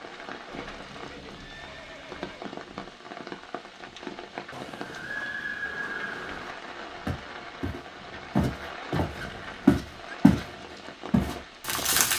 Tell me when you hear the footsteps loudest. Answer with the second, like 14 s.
10 s.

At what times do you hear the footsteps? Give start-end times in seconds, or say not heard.
7.0-10.4, 11.1-12.1.